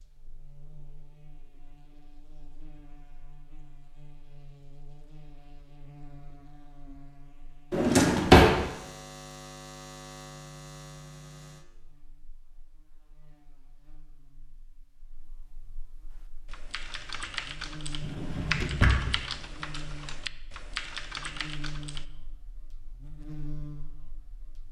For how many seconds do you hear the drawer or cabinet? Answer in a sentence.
You can hear the drawer or cabinet for 2 seconds altogether.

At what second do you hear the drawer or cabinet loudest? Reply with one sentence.
The volume of the drawer or cabinet peaks at 8 seconds.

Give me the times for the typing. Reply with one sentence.
The typing can be heard from 16.1 to 22.1 s.